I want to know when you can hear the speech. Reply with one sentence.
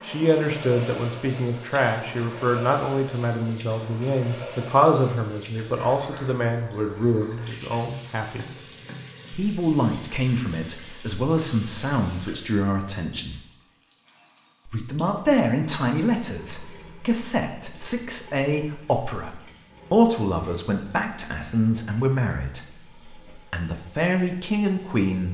You can hear the speech from 0.0 to 8.7 s, from 9.3 to 13.3 s and from 14.7 to 25.2 s.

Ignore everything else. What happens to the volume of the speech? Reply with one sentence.
The loudness of the speech stays about the same.